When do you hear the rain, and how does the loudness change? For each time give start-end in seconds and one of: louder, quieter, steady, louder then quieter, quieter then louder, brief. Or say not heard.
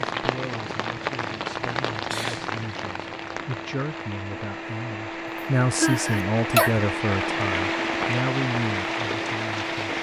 0.0-9.9 quieter then louder.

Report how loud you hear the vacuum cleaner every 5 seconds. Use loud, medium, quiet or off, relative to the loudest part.
medium, loud.